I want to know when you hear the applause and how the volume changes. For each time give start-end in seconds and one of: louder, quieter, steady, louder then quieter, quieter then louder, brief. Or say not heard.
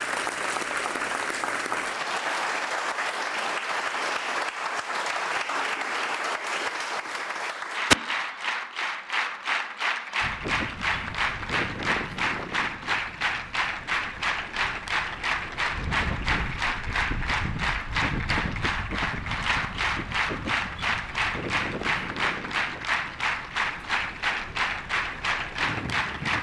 0.0-26.3 steady.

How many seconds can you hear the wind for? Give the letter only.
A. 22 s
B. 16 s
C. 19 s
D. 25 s
B.